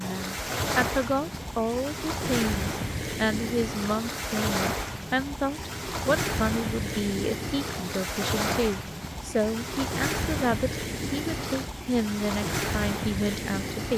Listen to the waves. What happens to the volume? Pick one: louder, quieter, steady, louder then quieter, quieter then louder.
steady.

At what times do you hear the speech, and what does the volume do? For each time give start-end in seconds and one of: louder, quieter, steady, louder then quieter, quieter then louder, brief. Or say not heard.
0.0-13.9 steady.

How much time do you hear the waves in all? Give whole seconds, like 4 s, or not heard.
14 s.